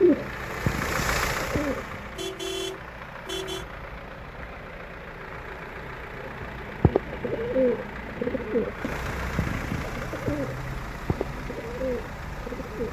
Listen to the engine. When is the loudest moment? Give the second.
1 s.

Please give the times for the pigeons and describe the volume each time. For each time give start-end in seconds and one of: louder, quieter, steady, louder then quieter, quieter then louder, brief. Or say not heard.
0.0-2.0 brief
6.2-12.8 quieter.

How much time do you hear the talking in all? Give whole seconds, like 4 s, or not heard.
not heard.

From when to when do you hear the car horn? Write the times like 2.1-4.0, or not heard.
2.1-3.6.